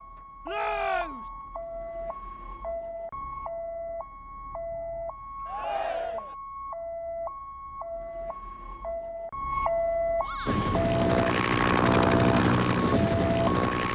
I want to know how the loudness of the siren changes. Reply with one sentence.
The loudness of the siren goes up.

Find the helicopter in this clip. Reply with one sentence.
The helicopter can be heard from 10.4 to 13.9 s.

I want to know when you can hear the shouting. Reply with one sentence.
The shouting can be heard from 0.5 to 1.2 s, from 5.5 to 6.3 s and from 10.2 to 10.8 s.